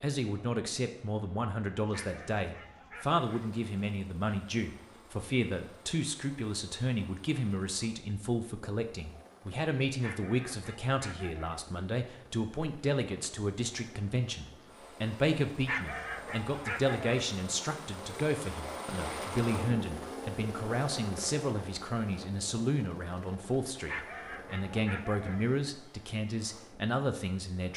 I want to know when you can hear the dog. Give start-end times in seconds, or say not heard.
1.9-3.5, 10.0-11.6, 15.7-17.2, 23.9-25.4.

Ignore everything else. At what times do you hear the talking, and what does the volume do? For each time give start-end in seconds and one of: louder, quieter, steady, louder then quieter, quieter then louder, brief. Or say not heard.
0.0-27.7 steady.